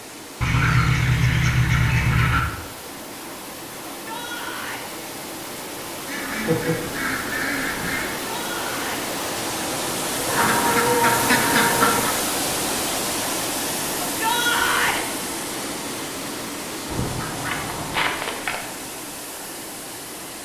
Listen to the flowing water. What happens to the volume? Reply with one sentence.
The volume of the flowing water goes up, then down.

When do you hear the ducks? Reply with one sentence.
The ducks can be heard from 0.4 to 2.4 s, from 6.0 to 8.1 s, from 10.2 to 12.2 s and from 16.9 to 18.6 s.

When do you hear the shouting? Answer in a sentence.
You can hear the shouting from 3.9 to 4.9 s, from 8.2 to 9.1 s and from 14.0 to 15.1 s.